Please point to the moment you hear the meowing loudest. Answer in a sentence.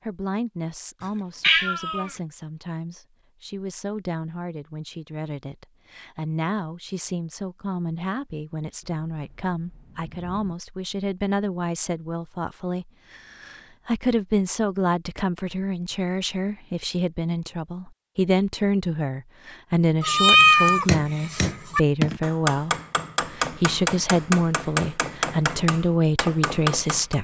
The volume of the meowing peaks at 20 seconds.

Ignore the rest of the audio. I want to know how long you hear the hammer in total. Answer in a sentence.
The hammer can be heard for 7 seconds in total.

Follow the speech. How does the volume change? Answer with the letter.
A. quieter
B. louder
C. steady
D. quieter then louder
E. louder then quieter
B.